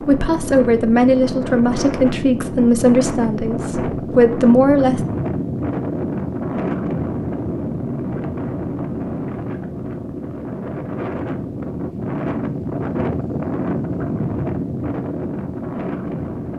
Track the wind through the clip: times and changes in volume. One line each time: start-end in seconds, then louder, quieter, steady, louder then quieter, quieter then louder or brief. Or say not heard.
0.0-16.5 steady.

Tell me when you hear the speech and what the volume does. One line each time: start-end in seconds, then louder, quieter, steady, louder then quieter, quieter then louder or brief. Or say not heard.
0.1-5.0 quieter then louder.